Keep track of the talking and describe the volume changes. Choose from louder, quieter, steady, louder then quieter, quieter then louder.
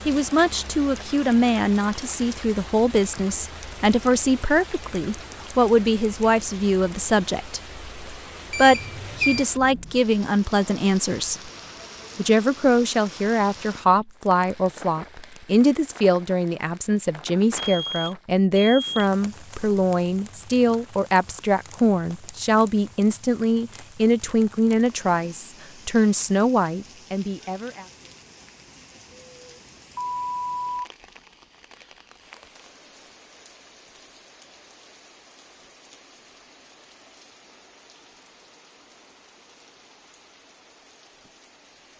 steady.